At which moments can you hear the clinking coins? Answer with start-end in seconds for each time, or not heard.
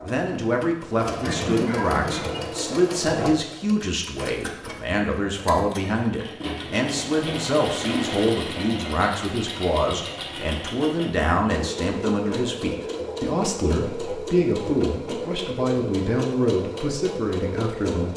not heard.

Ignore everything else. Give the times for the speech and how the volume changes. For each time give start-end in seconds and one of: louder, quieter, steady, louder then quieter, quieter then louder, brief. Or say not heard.
0.0-18.1 steady.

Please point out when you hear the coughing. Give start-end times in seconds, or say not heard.
1.2-2.4.